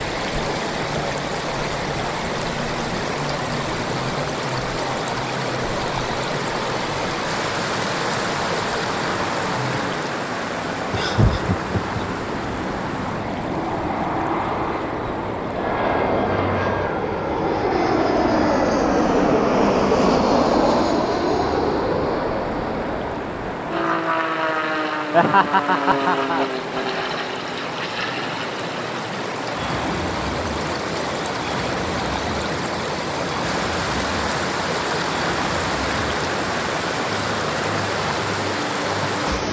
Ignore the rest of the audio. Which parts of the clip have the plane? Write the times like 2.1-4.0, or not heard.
0.0-39.4.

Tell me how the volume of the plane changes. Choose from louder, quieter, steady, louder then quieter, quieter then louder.
louder then quieter.